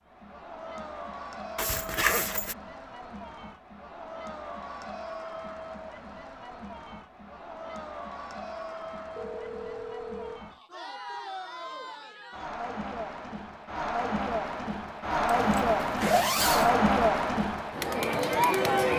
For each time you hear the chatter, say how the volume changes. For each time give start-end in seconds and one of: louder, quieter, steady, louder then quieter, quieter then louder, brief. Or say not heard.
0.1-18.9 louder.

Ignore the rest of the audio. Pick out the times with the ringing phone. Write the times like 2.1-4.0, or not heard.
9.2-10.4.